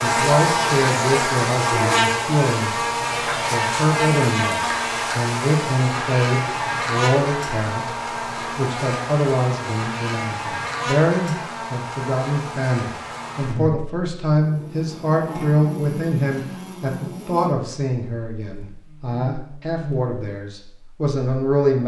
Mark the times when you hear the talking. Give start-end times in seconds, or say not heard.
0.0-2.8, 3.5-8.0, 8.6-21.8.